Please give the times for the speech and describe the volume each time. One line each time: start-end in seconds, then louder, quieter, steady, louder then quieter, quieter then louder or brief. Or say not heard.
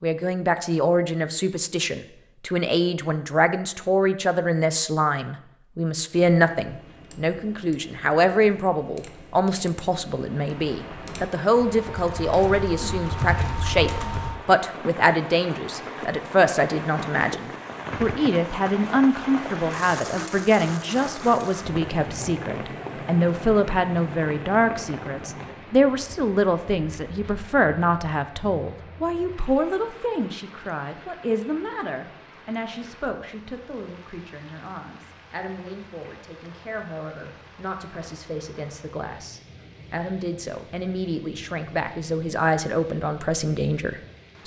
0.0-44.4 quieter.